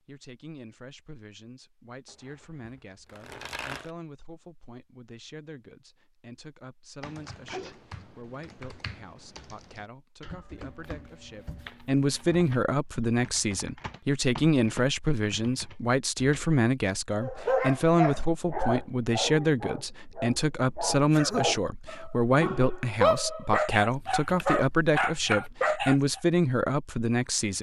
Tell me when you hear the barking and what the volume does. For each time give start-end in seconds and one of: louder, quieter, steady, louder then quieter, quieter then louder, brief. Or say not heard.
17.2-26.2 quieter then louder.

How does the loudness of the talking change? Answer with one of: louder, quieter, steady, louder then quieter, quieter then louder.
louder.